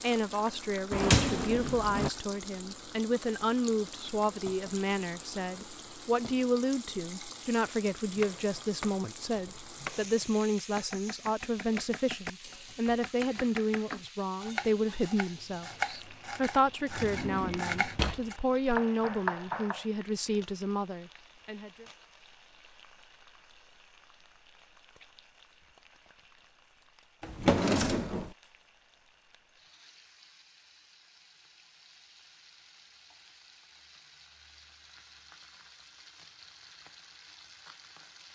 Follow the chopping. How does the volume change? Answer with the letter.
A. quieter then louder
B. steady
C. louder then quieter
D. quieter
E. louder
E.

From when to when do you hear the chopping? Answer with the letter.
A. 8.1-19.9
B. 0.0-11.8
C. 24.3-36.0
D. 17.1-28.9
A.